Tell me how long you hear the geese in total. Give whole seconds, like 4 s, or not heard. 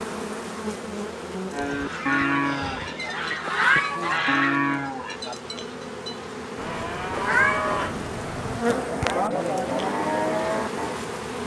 3 s.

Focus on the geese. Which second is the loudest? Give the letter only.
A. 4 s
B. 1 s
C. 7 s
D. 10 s
A.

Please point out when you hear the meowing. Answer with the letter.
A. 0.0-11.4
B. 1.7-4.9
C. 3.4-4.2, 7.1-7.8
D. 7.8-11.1
C.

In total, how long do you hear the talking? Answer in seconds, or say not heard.
not heard.